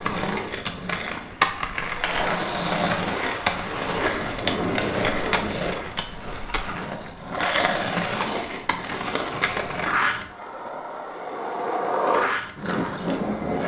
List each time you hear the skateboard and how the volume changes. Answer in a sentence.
You can hear the skateboard from 0.0 to 13.6 s, at a steady volume.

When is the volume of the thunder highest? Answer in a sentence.
The volume of the thunder peaks at 5 seconds.